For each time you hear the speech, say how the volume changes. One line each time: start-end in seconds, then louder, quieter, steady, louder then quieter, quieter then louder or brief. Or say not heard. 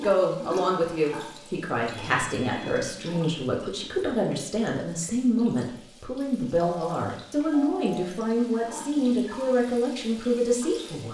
0.0-11.0 steady.